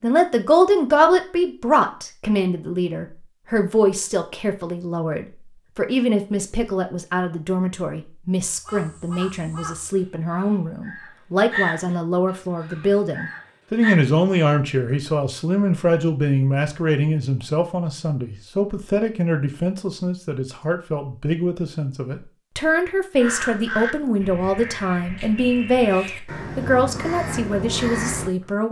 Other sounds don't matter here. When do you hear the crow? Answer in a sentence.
The crow can be heard from 8.6 to 14.0 s and from 23.1 to 28.3 s.